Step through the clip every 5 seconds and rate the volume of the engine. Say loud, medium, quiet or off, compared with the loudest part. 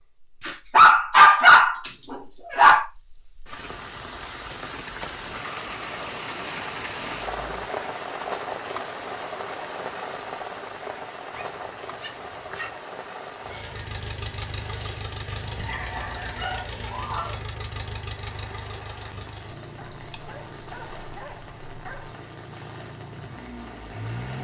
off, off, loud, loud, loud.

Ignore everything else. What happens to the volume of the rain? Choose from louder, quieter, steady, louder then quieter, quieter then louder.
quieter.